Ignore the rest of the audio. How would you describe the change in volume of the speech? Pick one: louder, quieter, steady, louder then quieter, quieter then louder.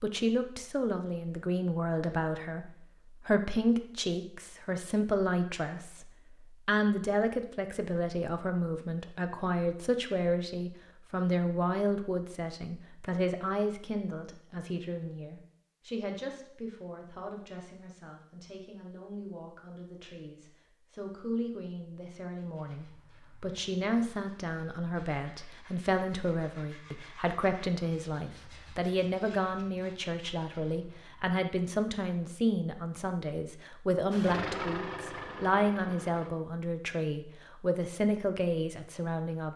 quieter then louder.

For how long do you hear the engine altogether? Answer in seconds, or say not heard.
2 s.